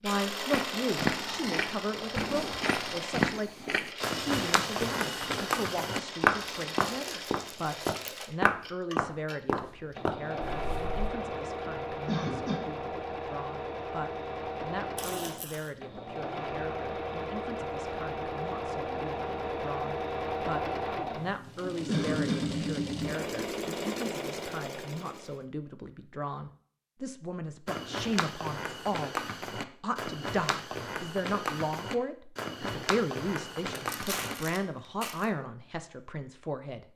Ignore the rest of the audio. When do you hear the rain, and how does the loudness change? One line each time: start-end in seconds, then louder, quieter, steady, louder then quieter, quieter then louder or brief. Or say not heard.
not heard.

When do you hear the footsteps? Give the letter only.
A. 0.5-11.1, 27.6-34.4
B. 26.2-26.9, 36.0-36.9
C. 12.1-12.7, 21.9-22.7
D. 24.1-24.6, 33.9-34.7
A.